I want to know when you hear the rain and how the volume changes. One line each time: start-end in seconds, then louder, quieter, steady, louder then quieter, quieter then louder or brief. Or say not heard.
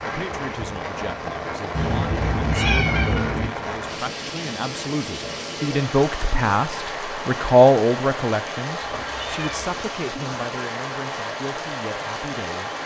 0.0-12.8 steady.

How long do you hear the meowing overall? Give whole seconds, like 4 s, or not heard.
3 s.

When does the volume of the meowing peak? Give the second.
3 s.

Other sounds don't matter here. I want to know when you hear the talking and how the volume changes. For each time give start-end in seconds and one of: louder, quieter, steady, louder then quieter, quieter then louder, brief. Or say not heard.
0.0-12.8 louder then quieter.